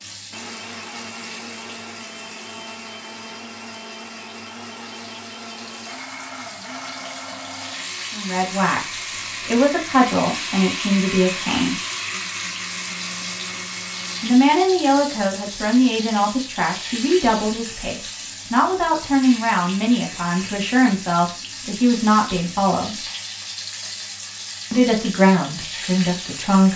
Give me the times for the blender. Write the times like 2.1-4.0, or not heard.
0.3-14.4.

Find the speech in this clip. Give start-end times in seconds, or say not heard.
8.1-11.8, 14.2-23.0, 24.7-26.7.